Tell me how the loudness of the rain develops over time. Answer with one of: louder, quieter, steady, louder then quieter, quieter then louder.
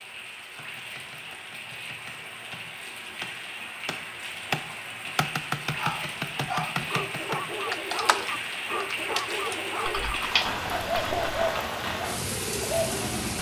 louder.